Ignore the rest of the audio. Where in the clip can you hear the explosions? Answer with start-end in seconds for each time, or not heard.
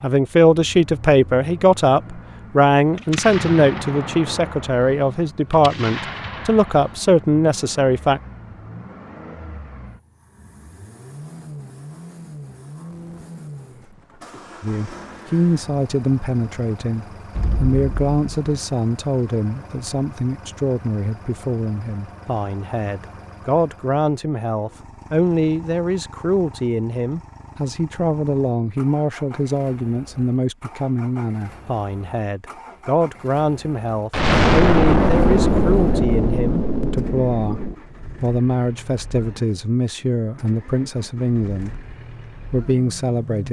3.0-6.8, 17.4-18.4, 34.1-37.8.